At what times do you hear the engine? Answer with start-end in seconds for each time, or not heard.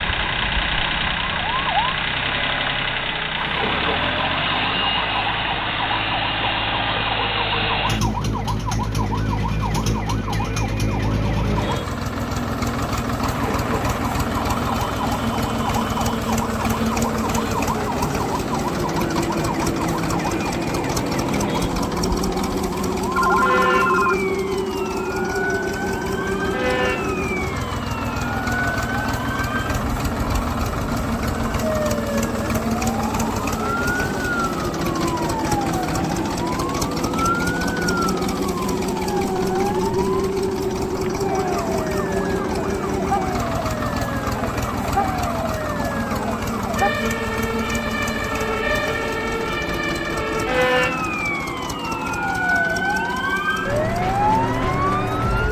0.0-55.4.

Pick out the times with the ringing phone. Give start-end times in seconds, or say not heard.
23.1-24.4.